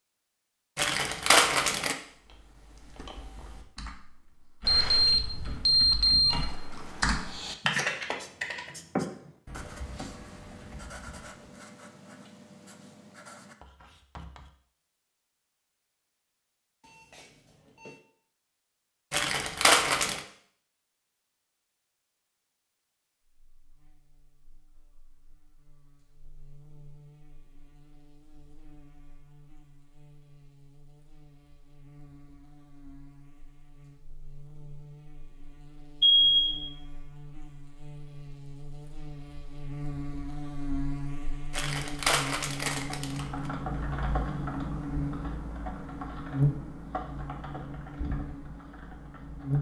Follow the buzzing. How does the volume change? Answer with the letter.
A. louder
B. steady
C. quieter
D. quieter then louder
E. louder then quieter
A.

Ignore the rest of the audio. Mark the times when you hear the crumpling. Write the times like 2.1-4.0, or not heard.
0.8-1.9, 19.1-20.2, 41.5-43.5.